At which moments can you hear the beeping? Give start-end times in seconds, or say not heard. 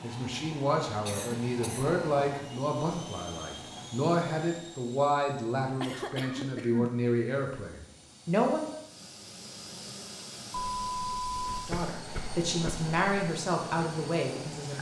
10.5-11.7.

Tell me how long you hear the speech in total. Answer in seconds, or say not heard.
12 s.